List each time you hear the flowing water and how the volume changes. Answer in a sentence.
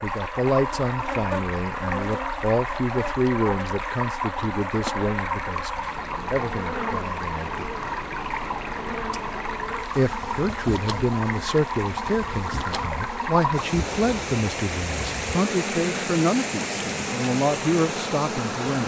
The flowing water can be heard from 0.0 to 18.8 s, at a steady volume.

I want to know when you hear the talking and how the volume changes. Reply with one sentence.
You can hear the talking from 0.0 to 7.8 s, getting quieter; and from 9.9 to 18.8 s, at a steady volume.